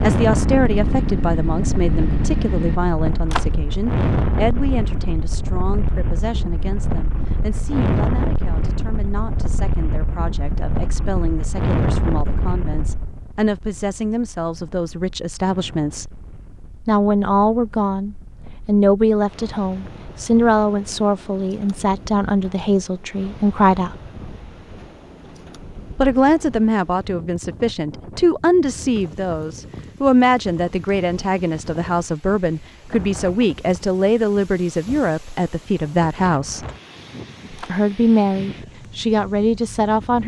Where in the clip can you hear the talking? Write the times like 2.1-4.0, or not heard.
0.0-16.1, 16.9-23.9, 25.9-36.6, 37.6-40.2.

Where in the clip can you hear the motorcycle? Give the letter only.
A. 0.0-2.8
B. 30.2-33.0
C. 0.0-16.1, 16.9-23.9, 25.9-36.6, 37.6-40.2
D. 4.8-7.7
A.